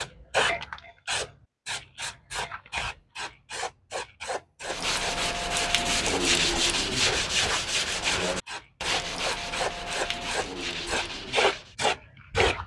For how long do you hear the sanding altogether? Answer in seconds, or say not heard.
7 s.